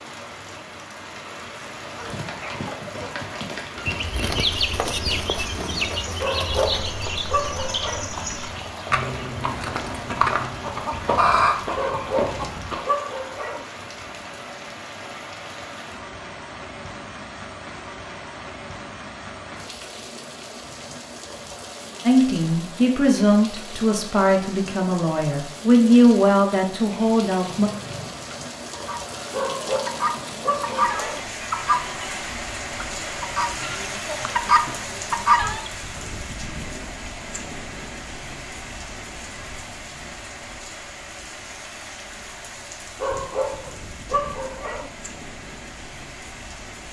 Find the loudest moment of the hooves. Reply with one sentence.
The loudest moment of the hooves is at 10 seconds.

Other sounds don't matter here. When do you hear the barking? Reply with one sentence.
You can hear the barking from 6.2 to 8.1 s, from 11.8 to 13.7 s, from 29.3 to 31.2 s and from 43.0 to 44.9 s.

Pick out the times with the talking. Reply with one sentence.
The talking can be heard from 22.1 to 27.7 s.